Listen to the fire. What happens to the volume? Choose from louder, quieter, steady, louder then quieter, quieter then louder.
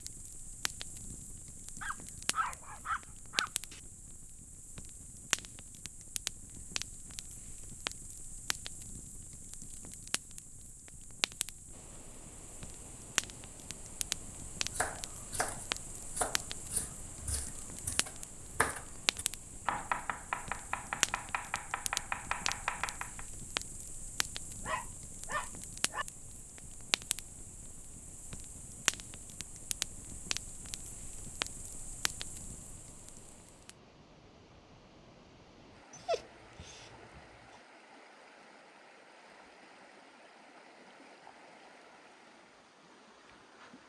steady.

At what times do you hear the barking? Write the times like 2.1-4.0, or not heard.
1.8-3.8, 24.6-26.1, 35.9-37.2.